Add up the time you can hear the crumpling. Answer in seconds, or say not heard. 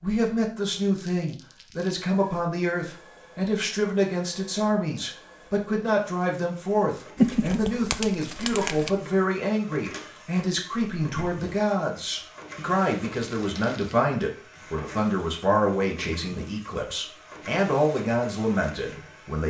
4 s.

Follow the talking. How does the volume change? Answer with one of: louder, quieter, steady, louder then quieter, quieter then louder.
steady.